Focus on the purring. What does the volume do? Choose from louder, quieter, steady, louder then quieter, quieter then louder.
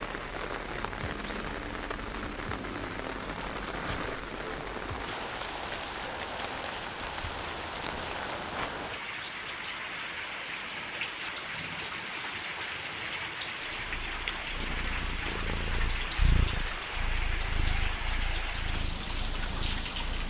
louder then quieter.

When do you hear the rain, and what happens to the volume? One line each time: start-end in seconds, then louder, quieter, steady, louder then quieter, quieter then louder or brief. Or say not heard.
0.0-20.2 steady.